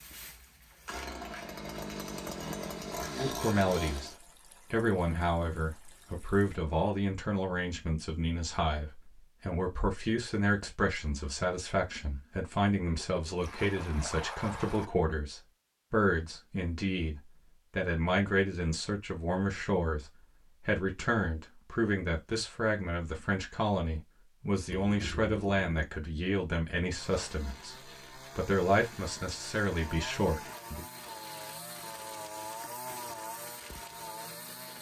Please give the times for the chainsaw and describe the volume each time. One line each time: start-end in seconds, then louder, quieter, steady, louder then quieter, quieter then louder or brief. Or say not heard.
0.0-4.2 louder
26.9-34.7 louder.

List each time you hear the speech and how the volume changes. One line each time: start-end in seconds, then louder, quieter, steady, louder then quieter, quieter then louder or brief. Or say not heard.
3.1-30.9 steady.